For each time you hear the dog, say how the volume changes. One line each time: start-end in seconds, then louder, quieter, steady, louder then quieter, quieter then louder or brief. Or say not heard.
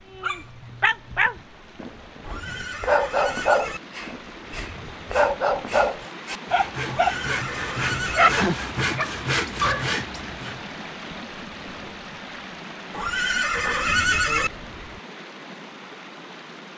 0.1-7.2 steady
8.0-10.0 brief.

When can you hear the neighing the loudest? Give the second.
14 s.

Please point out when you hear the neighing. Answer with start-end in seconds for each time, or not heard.
2.2-3.8, 6.8-8.4, 12.9-14.5.